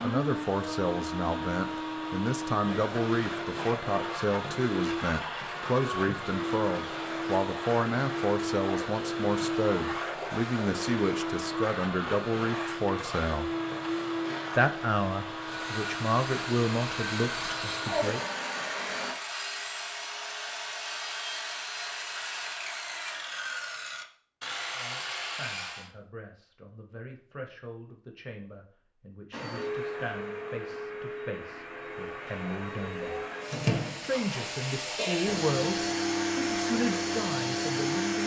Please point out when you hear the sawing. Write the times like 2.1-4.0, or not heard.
15.4-25.9.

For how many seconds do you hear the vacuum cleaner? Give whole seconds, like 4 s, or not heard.
28 s.